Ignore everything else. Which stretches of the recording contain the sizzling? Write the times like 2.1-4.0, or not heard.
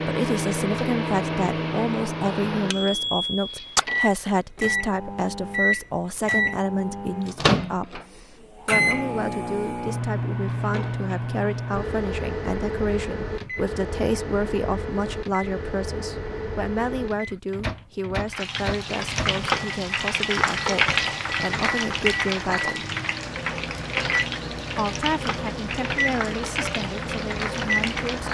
18.2-28.3.